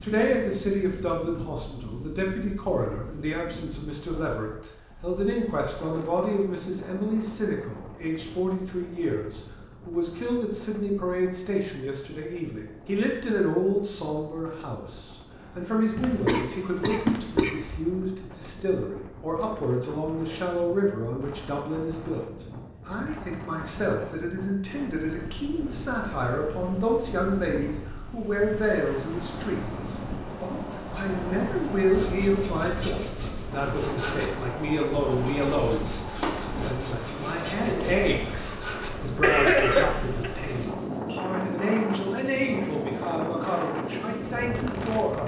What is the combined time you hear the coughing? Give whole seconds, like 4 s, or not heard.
3 s.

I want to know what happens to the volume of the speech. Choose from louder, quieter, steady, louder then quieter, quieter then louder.
steady.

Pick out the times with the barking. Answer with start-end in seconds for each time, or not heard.
not heard.